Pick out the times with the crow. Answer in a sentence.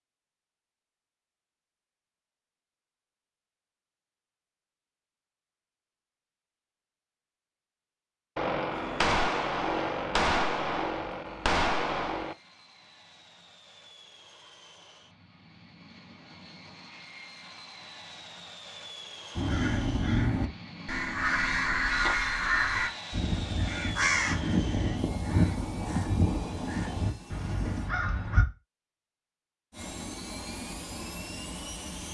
The crow can be heard from 19.4 to 28.4 s.